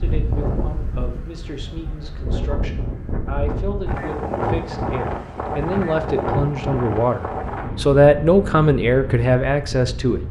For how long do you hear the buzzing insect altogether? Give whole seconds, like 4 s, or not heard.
not heard.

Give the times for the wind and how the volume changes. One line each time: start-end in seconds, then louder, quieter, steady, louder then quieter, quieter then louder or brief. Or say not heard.
0.0-10.2 louder then quieter.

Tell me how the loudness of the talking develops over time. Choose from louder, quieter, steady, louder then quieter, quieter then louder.
louder.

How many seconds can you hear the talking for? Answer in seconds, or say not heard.
10 s.